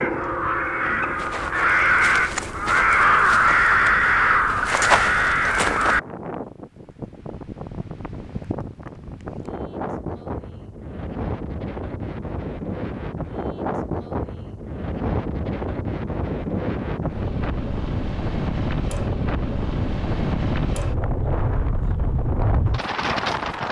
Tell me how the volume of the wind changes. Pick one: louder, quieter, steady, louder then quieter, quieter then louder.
louder.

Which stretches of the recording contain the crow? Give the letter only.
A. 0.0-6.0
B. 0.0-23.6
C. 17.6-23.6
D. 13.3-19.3
A.